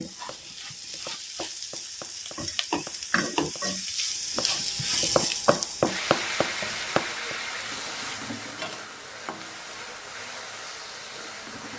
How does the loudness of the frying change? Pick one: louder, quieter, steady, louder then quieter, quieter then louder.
louder then quieter.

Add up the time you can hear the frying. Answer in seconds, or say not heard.
12 s.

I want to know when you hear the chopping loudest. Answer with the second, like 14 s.
6 s.